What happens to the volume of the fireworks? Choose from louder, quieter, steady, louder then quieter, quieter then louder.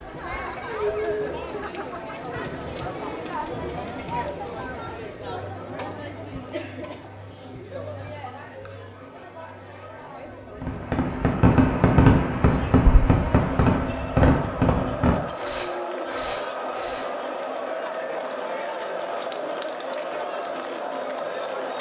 quieter.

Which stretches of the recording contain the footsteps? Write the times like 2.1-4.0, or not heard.
not heard.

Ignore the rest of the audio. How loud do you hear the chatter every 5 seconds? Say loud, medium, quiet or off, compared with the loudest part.
loud, medium, medium, loud, loud.